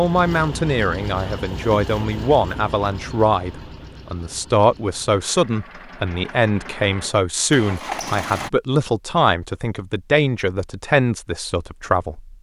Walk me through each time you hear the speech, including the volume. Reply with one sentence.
You can hear the speech from 0.0 to 12.3 s, at a steady volume.